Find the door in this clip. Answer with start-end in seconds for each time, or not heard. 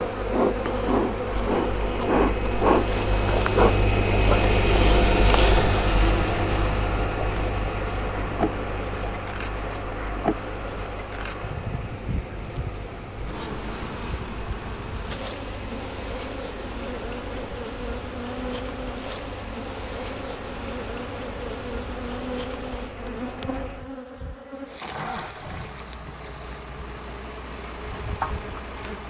not heard.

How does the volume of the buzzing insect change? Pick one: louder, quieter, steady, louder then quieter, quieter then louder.
quieter.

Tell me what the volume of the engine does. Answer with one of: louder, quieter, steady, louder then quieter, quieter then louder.
quieter.